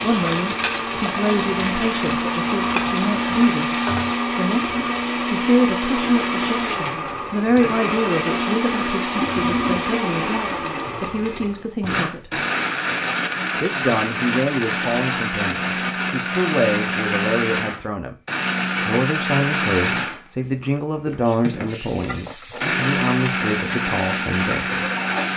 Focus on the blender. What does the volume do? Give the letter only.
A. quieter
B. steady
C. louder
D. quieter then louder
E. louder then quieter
B.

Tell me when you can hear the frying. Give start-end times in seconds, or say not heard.
0.0-4.2, 21.6-25.3.